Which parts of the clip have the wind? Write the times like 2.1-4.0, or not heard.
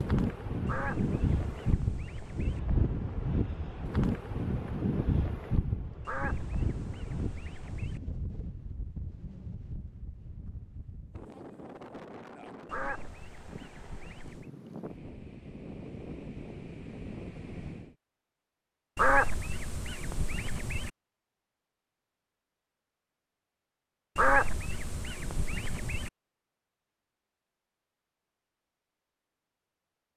0.0-17.9.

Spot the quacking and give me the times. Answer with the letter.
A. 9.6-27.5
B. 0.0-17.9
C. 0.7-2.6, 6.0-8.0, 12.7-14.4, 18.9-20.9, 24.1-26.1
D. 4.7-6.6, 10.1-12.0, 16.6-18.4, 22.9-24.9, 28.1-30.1
C.